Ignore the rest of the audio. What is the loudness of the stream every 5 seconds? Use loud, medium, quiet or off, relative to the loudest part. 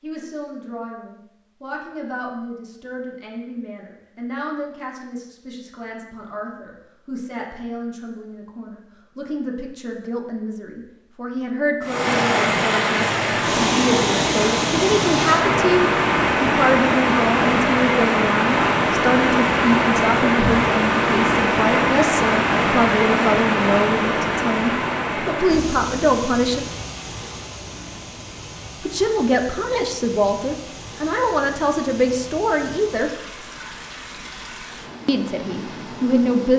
off, off, loud, loud, loud, quiet, quiet, quiet.